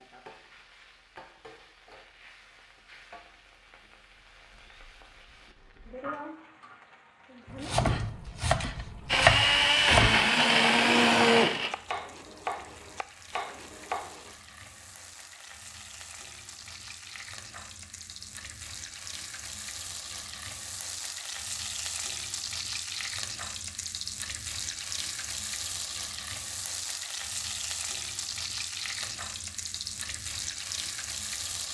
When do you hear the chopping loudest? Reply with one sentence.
The loudest moment of the chopping is at 9 seconds.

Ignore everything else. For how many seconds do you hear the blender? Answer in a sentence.
The blender can be heard for 3 seconds in total.